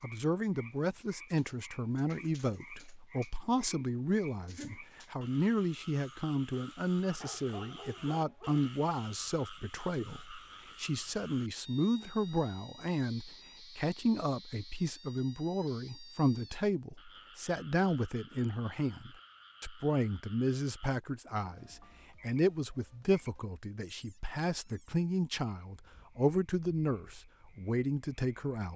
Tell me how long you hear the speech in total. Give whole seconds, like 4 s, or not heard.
29 s.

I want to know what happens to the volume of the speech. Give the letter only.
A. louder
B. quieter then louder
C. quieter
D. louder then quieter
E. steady
E.